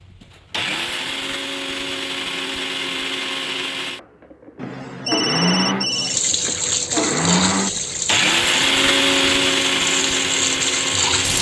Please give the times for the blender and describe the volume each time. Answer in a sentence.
The blender can be heard from 0.0 to 11.3 s, getting louder.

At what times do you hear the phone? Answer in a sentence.
The phone can be heard from 4.5 to 6.2 s.